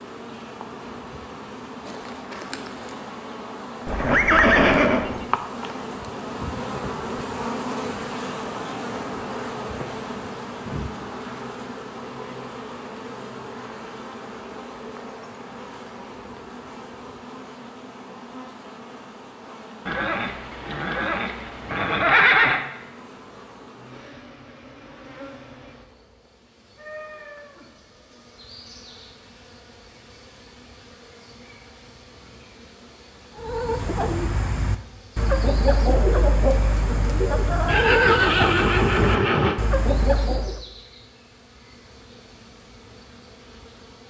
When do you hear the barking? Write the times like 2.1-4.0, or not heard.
not heard.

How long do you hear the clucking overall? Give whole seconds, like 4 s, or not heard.
7 s.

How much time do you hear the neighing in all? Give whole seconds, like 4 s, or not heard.
6 s.